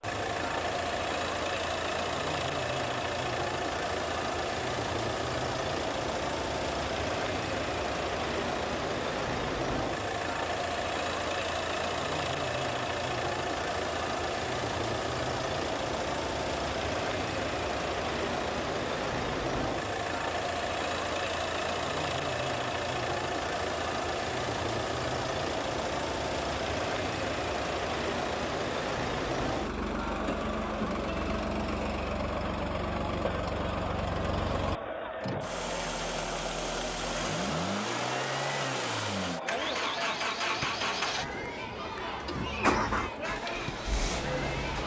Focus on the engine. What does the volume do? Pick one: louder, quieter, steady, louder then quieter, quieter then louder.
steady.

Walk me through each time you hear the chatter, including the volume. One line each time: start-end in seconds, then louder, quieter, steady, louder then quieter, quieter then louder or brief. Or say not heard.
0.2-44.8 steady.